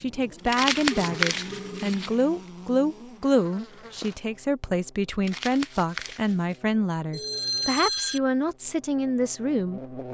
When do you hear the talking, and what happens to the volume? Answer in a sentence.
The talking can be heard from 0.0 to 10.1 s, at a steady volume.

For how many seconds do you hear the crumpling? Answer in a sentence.
The crumpling can be heard for 3 seconds in total.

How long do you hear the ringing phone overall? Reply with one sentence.
You can hear the ringing phone for 3 seconds altogether.